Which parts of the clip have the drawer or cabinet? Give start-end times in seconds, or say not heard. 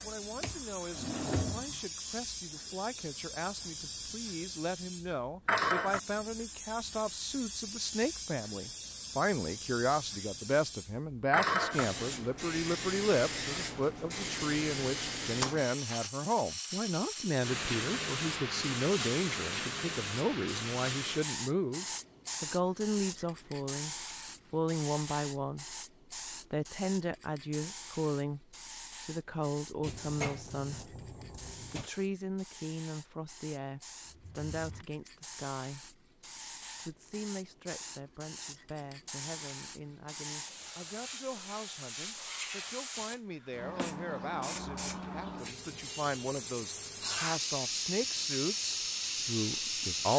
0.4-1.9, 29.8-31.9, 34.0-34.9.